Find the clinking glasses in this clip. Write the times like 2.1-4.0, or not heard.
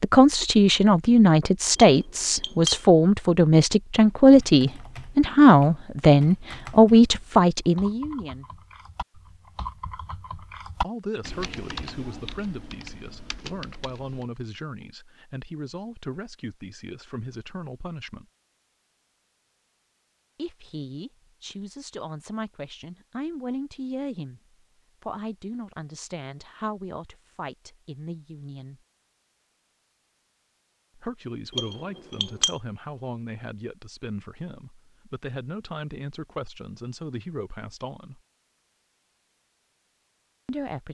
1.8-2.8, 31.5-32.5.